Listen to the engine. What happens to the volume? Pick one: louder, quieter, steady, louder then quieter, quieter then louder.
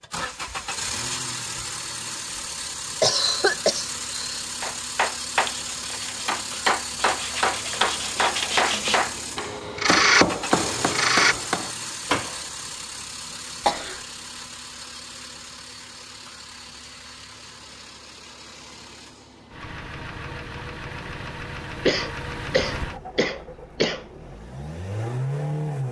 quieter then louder.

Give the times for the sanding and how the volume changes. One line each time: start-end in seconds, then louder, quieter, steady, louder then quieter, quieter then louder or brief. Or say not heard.
5.6-11.3 louder.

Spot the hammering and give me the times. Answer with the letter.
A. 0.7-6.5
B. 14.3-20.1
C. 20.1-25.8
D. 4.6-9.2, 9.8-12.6
D.